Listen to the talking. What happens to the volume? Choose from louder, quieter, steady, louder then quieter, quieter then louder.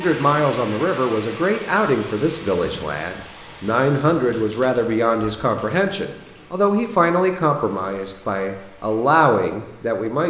steady.